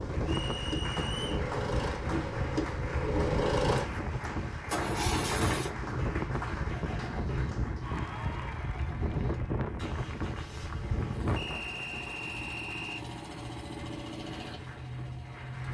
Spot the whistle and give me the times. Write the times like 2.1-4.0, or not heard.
0.2-1.4, 11.3-13.1.